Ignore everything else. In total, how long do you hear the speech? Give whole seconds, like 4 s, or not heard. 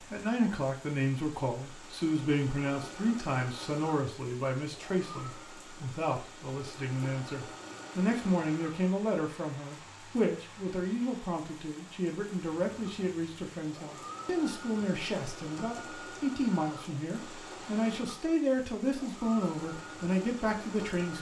21 s.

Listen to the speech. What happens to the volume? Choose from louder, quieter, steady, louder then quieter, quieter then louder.
steady.